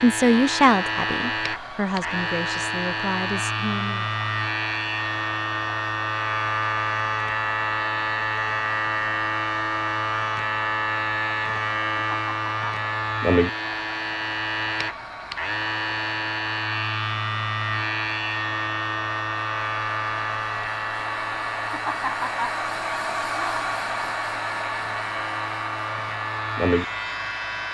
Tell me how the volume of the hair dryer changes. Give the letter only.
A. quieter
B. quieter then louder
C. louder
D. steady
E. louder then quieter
C.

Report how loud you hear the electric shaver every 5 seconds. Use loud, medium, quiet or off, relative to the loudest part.
loud, loud, loud, loud, medium, loud.